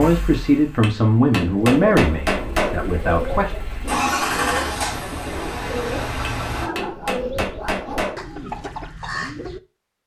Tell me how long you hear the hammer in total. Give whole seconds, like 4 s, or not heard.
4 s.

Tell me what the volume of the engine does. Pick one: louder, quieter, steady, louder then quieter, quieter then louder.
louder then quieter.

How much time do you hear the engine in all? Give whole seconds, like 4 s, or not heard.
7 s.